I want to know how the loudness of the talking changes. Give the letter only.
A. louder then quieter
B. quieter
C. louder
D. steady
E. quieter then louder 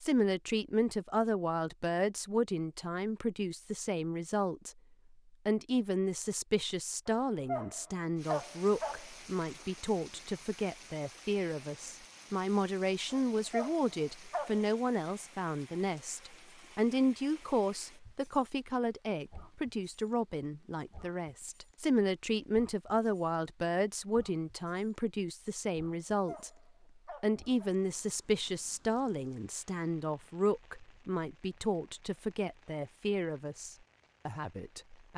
D.